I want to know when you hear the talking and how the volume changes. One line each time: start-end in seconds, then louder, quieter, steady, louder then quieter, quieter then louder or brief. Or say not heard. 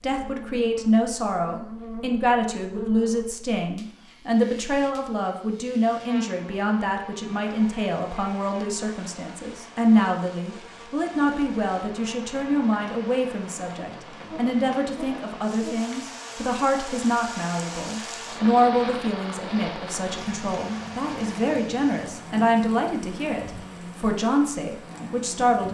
0.0-25.6 steady.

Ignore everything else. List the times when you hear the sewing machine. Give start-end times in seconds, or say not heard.
not heard.